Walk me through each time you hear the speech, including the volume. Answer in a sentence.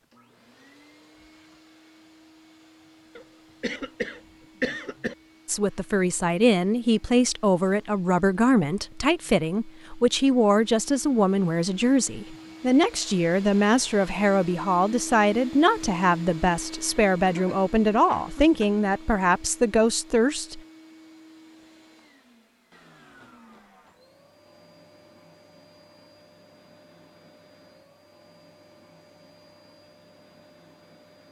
The speech can be heard from 5.5 to 20.6 s, at a steady volume.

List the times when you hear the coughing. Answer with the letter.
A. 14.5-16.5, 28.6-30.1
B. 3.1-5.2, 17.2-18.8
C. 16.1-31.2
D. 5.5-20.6
B.